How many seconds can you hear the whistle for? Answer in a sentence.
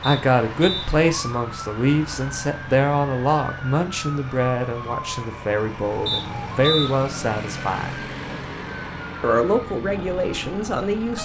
You can hear the whistle for 2 seconds altogether.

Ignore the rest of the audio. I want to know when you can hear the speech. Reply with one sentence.
You can hear the speech from 0.0 to 8.0 s and from 9.2 to 11.2 s.